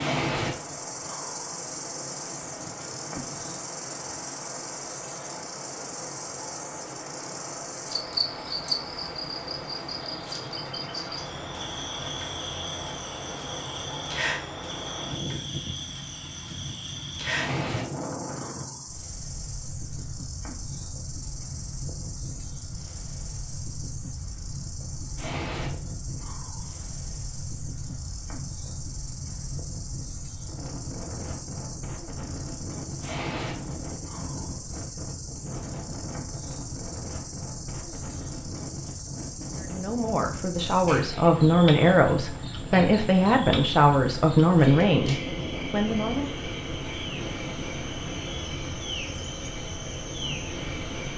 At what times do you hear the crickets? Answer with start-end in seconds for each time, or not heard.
0.0-51.1.